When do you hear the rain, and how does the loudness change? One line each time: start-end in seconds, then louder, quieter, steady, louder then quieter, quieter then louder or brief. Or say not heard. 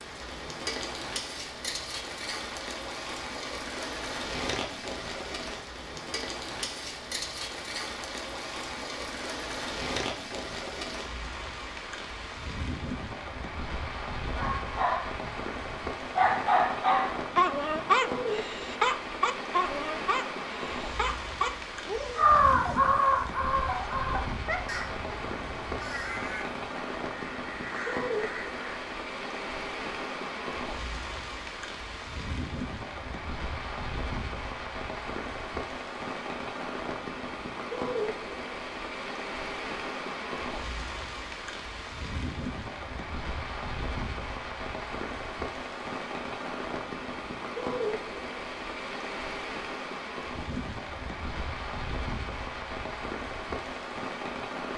0.0-54.7 steady.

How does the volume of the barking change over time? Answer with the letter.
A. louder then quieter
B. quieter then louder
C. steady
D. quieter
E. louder
D.